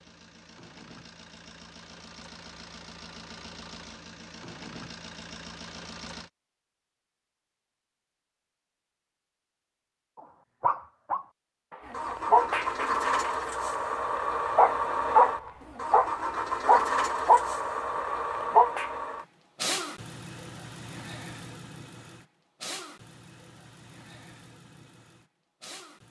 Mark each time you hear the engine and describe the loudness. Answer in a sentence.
You can hear the engine from 0.0 to 6.3 s, getting louder; and from 11.8 to 26.0 s, getting quieter.